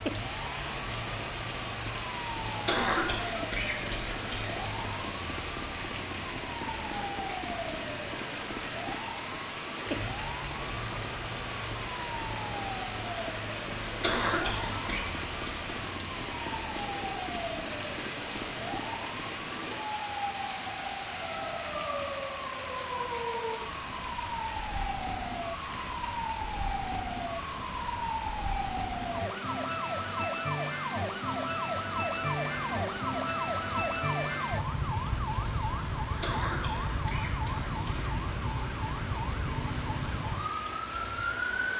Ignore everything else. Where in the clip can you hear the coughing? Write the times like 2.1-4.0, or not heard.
2.6-4.5, 14.0-15.1, 36.2-38.1.